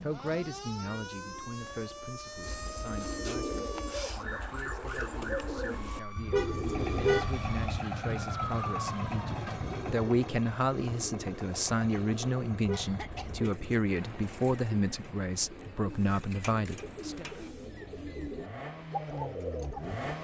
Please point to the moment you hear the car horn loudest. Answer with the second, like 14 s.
7 s.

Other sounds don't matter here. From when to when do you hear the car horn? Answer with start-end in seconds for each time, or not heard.
6.2-7.7, 12.5-13.5.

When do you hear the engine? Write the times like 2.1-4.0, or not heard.
6.5-20.1.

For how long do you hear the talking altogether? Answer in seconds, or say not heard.
17 s.